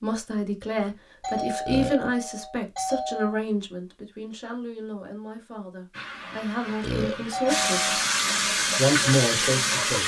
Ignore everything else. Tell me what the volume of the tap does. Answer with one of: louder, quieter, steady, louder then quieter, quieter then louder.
louder.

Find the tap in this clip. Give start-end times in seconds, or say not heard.
5.9-10.0.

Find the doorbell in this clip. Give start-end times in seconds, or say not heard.
1.2-3.4, 7.3-8.1.